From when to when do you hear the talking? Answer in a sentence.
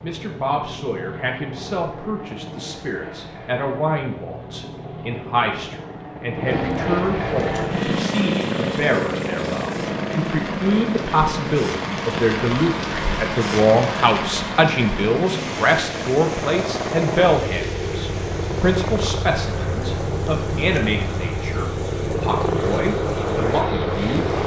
You can hear the talking from 0.0 to 24.3 s.